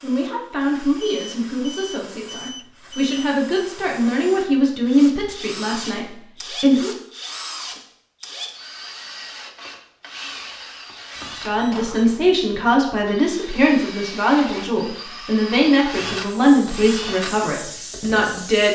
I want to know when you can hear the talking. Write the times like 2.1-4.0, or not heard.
0.0-6.9, 11.3-18.7.